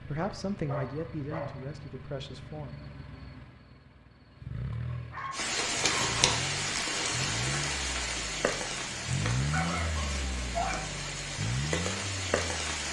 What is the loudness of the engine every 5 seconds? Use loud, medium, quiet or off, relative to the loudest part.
medium, loud, loud.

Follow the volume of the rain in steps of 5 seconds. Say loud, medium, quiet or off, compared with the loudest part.
off, loud, loud.